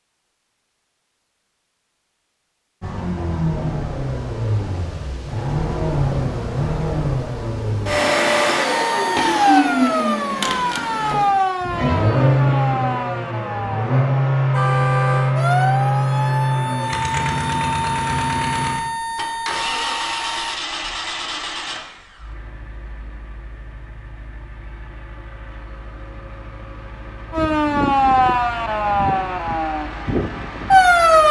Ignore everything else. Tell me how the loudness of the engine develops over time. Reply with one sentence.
The loudness of the engine goes down.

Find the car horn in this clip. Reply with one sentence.
You can hear the car horn from 14.5 to 15.3 s.